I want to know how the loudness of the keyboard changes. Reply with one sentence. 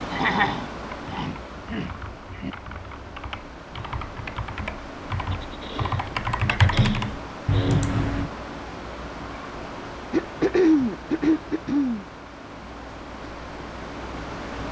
The loudness of the keyboard goes up.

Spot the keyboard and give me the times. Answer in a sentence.
You can hear the keyboard from 0.8 to 8.3 s.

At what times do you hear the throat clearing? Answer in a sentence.
You can hear the throat clearing from 0.1 to 2.5 s, from 5.3 to 7.9 s and from 10.1 to 12.1 s.